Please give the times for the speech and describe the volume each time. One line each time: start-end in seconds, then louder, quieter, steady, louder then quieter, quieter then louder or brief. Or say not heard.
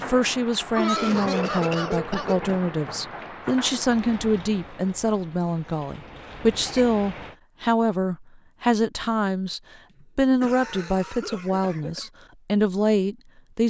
0.0-13.6 steady.